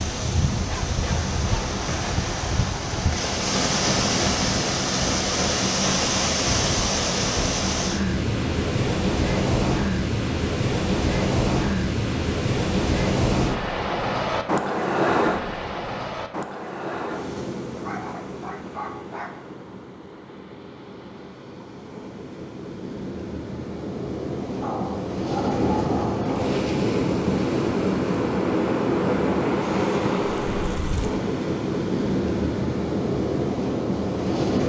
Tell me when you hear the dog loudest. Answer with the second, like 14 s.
26 s.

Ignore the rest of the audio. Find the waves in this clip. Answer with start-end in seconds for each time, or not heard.
0.0-34.6.